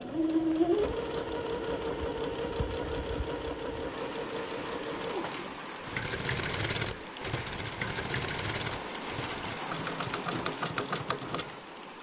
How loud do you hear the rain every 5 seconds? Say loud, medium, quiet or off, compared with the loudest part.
medium, loud, loud.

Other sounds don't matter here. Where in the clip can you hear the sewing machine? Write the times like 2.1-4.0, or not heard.
0.0-11.9.